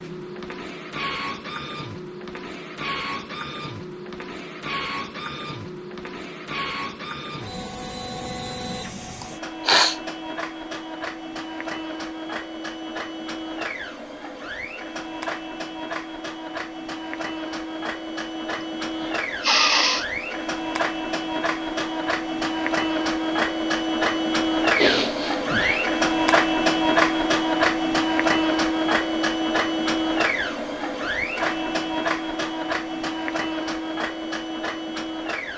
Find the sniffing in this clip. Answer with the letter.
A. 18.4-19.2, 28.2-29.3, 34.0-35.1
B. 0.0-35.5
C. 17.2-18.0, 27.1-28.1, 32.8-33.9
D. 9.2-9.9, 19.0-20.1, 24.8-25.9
D.